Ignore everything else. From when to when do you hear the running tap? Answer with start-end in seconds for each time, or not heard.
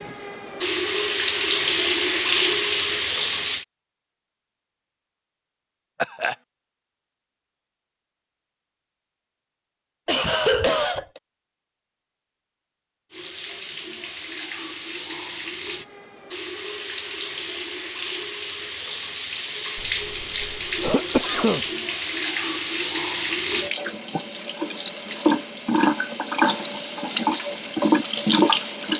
0.0-3.6, 13.1-28.9.